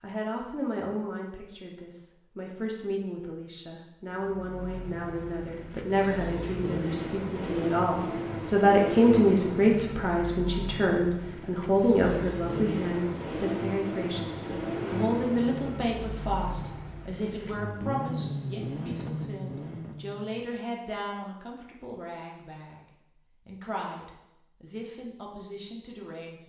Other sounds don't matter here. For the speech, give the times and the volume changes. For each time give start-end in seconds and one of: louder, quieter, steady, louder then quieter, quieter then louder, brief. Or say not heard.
0.0-22.9 louder then quieter
23.4-26.4 brief.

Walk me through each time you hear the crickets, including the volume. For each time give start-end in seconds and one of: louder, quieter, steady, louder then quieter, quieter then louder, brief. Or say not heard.
not heard.